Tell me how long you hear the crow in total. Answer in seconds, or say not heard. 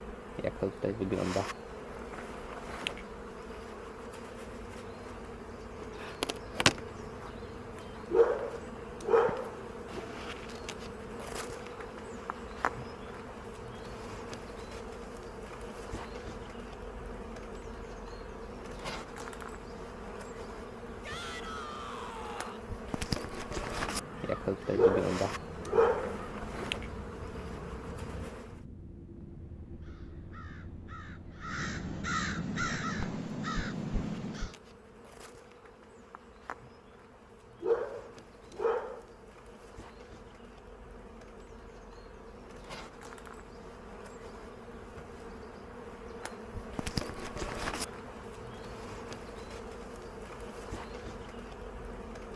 11 s.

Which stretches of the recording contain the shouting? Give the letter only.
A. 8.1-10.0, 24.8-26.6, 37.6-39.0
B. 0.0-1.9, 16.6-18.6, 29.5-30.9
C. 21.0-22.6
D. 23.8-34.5
C.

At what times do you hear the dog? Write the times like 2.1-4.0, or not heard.
8.1-10.0, 24.8-26.6, 37.6-39.0.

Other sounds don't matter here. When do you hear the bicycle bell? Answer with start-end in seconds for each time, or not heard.
not heard.